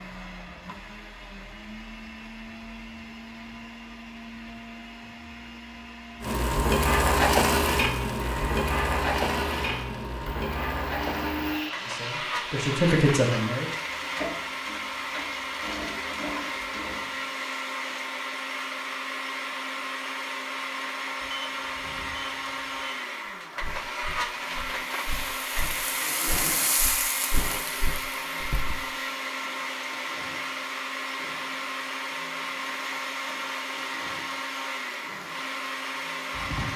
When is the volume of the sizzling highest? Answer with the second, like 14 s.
7 s.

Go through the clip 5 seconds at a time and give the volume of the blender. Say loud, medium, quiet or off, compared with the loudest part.
medium, medium, loud, loud, loud, loud, loud, loud.